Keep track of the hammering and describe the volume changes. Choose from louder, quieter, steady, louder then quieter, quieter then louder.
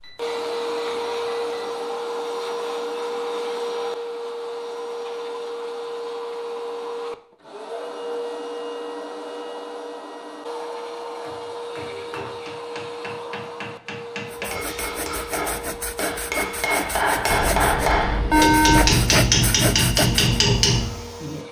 louder.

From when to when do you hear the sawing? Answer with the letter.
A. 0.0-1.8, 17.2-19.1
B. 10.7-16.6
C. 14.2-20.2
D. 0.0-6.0
C.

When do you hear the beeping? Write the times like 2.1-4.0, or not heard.
0.0-1.8, 17.2-19.1.